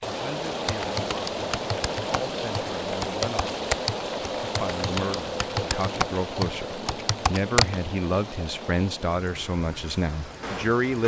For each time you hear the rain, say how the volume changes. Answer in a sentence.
You can hear the rain from 0.0 to 11.0 s, getting quieter.